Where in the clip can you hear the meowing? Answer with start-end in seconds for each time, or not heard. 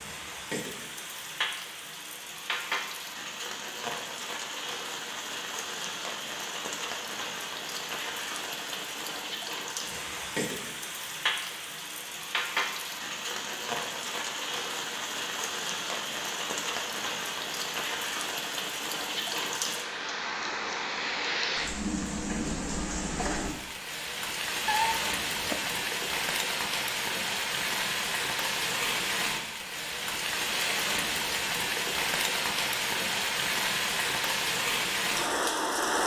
24.6-25.6.